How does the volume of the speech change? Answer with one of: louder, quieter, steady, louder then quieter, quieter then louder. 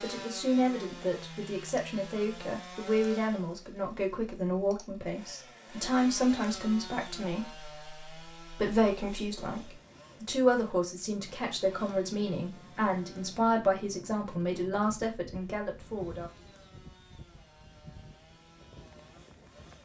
steady.